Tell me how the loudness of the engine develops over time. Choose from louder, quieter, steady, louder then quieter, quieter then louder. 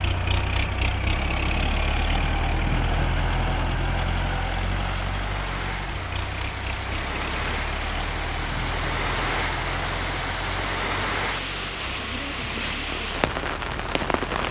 quieter.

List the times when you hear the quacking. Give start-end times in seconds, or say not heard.
not heard.